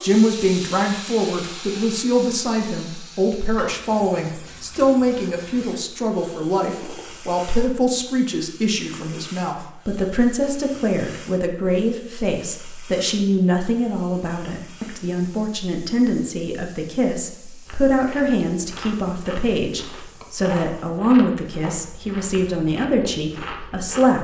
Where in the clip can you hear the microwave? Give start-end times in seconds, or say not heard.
not heard.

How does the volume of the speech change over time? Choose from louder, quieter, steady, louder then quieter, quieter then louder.
steady.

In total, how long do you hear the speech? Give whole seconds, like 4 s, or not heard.
24 s.